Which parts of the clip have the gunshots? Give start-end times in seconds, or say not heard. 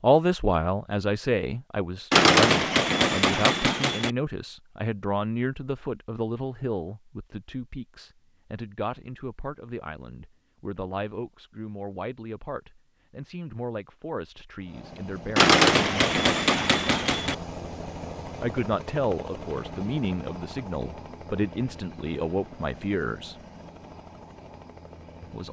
2.1-4.1, 15.3-17.4.